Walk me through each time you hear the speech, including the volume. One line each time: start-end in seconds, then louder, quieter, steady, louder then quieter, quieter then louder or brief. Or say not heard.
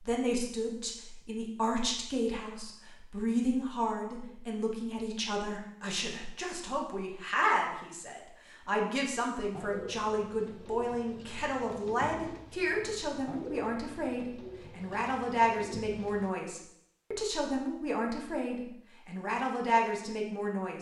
0.0-20.7 steady.